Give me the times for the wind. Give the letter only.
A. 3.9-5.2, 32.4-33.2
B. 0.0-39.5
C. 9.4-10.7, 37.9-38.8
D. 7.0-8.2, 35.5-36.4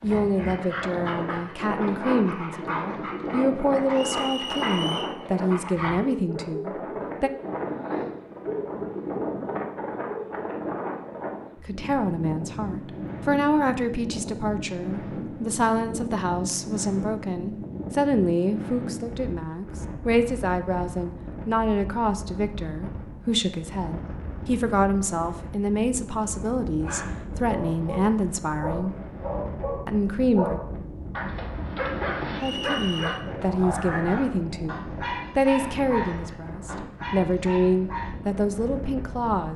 B.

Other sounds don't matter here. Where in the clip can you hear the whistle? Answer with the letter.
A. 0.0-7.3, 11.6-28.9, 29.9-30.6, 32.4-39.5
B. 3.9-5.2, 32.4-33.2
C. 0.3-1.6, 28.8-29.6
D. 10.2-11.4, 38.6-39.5
B.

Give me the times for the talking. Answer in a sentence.
The talking can be heard from 0.0 to 7.3 s, from 11.6 to 28.9 s, from 29.9 to 30.6 s and from 32.4 to 39.5 s.